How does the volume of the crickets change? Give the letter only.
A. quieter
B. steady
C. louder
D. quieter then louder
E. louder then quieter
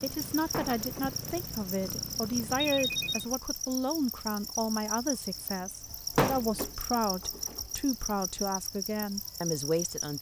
B.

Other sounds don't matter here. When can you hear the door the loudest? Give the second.
6 s.